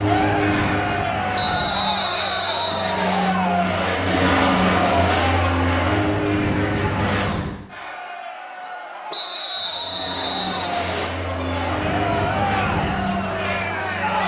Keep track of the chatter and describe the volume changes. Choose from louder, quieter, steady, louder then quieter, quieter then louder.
quieter then louder.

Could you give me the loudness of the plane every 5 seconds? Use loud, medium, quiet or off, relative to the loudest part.
loud, loud, medium.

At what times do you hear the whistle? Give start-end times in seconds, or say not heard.
1.4-3.4, 9.1-11.1.